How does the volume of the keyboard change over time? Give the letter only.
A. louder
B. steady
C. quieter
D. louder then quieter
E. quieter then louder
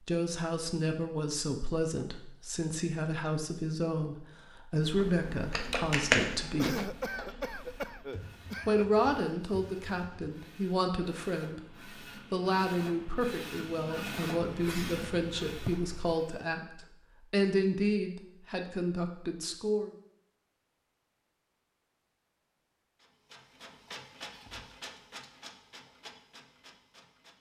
C.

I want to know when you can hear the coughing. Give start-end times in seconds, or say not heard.
6.5-9.0, 14.4-16.1.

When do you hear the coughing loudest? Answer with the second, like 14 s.
7 s.